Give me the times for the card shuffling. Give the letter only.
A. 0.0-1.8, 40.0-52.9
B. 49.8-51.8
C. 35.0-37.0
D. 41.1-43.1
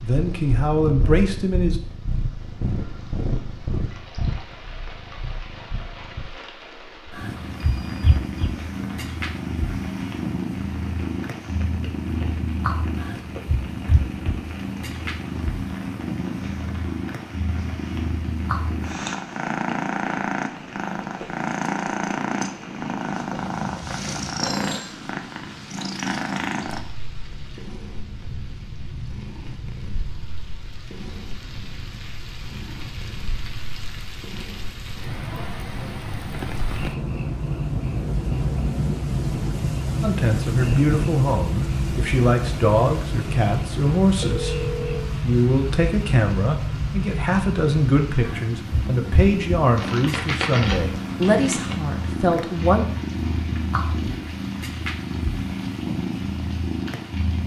B.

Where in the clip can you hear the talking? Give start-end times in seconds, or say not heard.
0.0-1.8, 40.0-52.9.